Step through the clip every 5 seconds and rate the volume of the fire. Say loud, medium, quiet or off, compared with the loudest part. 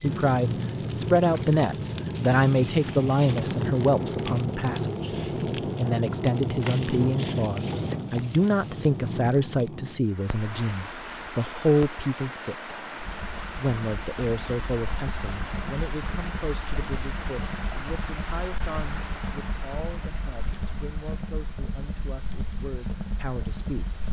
loud, loud, quiet, medium, medium.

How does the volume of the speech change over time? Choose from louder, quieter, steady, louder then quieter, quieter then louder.
quieter.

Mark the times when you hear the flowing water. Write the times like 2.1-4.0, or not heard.
10.1-24.0.